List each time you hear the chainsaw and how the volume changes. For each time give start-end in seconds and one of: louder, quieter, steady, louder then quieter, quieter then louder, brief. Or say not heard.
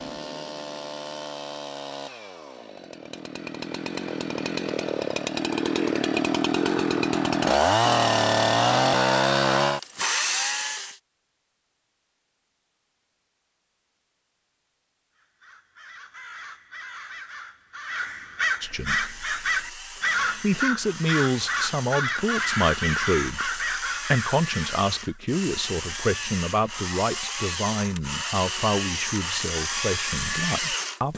0.0-10.9 louder
18.9-31.1 louder.